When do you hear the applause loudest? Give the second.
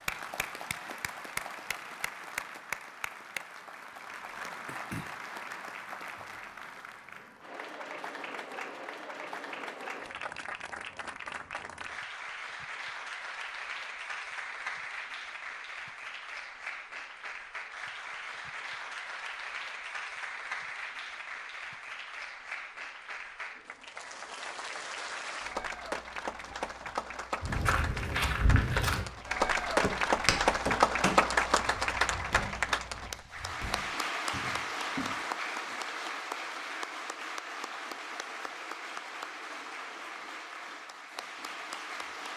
31 s.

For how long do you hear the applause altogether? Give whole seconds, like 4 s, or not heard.
42 s.